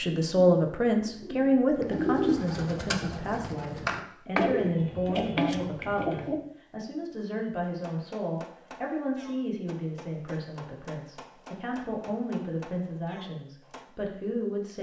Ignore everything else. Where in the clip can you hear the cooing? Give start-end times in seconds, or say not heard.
0.0-6.3.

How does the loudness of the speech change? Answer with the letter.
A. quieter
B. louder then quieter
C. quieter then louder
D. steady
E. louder
A.